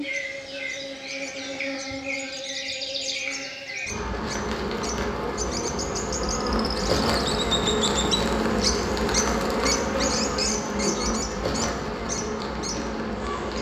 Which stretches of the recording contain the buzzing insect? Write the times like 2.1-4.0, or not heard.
0.0-13.5.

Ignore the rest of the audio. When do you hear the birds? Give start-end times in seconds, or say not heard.
0.0-13.5.